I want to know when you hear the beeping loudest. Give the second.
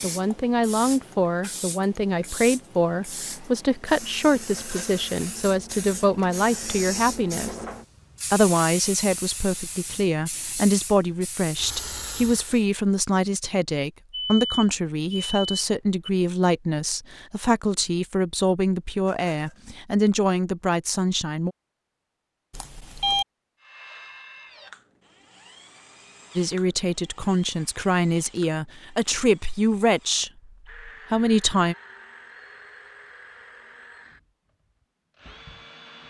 23 s.